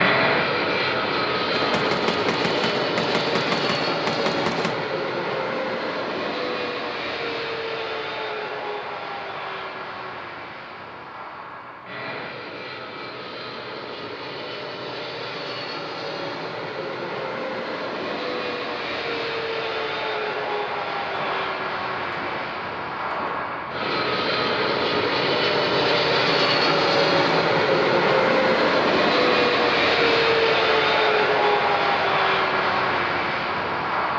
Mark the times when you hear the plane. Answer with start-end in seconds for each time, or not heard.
0.0-34.1.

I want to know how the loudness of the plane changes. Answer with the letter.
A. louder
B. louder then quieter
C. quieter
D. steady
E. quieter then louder
E.